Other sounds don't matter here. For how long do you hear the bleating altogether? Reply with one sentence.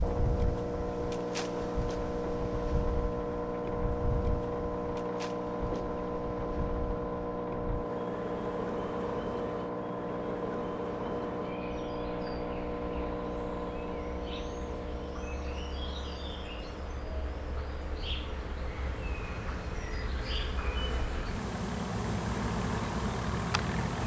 You can't hear the bleating here.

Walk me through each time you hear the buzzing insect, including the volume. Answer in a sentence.
You can hear the buzzing insect from 0.0 to 24.0 s, getting louder.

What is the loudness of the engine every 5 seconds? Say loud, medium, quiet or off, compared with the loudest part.
loud, loud, loud, medium, medium.